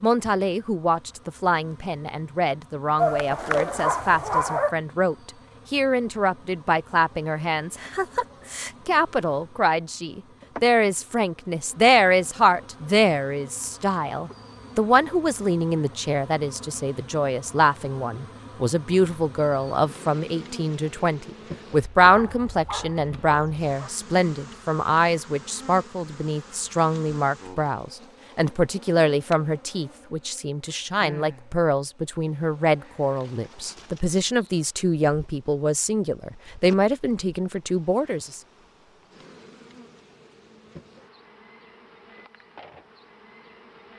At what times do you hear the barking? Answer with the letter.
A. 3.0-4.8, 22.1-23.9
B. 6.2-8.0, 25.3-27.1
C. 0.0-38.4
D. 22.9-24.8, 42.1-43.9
A.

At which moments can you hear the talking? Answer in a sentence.
You can hear the talking from 0.0 to 38.4 s.